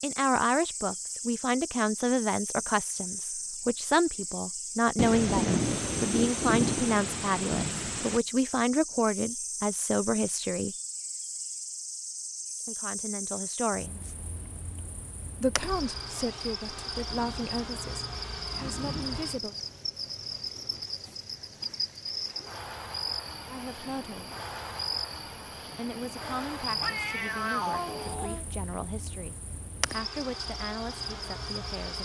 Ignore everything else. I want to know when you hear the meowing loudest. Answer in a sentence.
The loudest moment of the meowing is at 28 seconds.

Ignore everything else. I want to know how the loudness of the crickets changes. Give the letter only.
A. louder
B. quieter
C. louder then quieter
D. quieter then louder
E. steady
E.